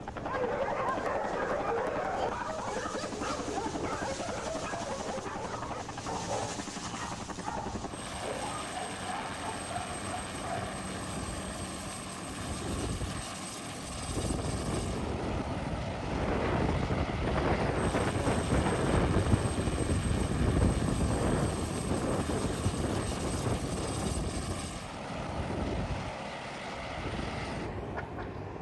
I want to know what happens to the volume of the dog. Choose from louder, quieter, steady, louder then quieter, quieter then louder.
quieter.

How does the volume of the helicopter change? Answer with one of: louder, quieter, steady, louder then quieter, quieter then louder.
steady.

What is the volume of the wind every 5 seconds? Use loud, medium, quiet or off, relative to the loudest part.
quiet, quiet, medium, loud, loud, medium.